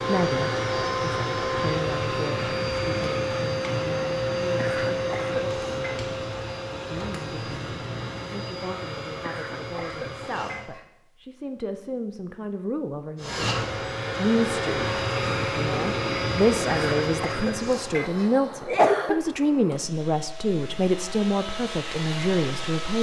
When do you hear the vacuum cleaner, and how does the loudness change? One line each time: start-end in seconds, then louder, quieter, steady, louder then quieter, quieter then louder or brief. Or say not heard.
0.0-10.7 quieter
13.2-22.9 quieter then louder.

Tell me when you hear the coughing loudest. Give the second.
19 s.